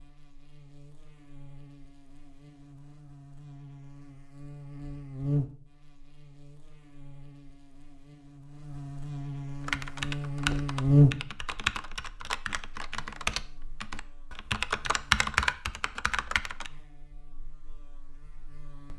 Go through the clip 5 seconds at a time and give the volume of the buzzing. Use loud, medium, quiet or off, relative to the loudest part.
quiet, medium, loud, quiet.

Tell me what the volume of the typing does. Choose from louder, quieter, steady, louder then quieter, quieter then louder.
louder.